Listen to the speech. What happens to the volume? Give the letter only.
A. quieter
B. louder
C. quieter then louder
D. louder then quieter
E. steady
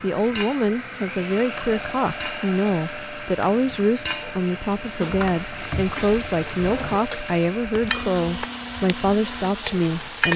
E.